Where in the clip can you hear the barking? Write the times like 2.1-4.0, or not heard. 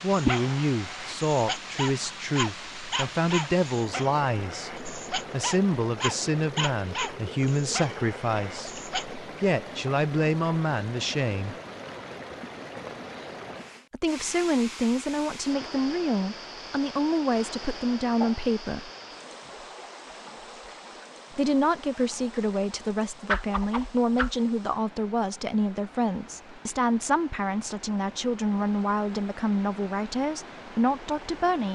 0.1-9.2.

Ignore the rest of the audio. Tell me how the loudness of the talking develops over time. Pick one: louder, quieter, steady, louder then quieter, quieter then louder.
steady.